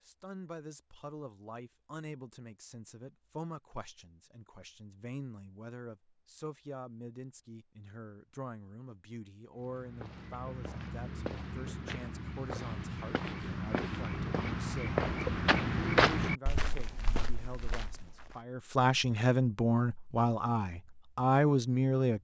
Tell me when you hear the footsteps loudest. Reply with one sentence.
The loudest moment of the footsteps is at 16 seconds.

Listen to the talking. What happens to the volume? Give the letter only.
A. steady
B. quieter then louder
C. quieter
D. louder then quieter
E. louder
E.